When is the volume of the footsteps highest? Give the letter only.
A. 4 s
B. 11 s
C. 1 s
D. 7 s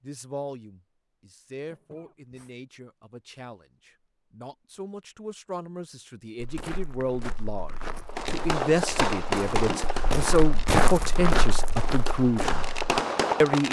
B.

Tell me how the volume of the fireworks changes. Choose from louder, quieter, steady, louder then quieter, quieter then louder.
quieter then louder.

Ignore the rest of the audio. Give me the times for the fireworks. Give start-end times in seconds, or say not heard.
8.1-13.6.